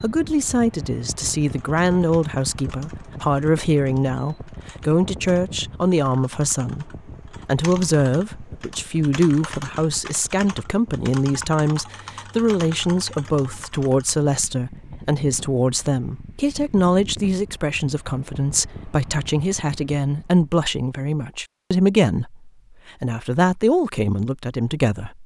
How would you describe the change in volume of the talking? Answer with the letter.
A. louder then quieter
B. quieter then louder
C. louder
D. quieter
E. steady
E.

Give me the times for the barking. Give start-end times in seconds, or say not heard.
not heard.